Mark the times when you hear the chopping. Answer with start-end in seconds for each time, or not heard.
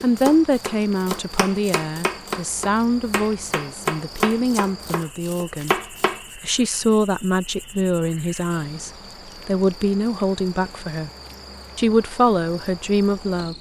0.0-6.2.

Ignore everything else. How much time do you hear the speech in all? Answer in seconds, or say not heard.
12 s.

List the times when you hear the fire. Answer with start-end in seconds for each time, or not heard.
not heard.